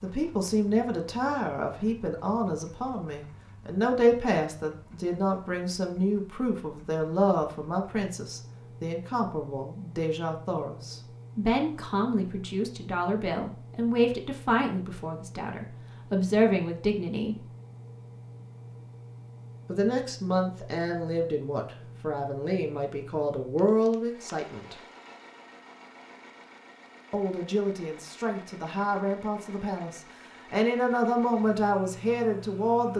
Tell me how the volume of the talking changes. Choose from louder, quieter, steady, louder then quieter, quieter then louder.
steady.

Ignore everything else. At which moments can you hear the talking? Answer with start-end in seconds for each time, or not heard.
0.0-17.4, 19.6-24.8, 27.1-32.9.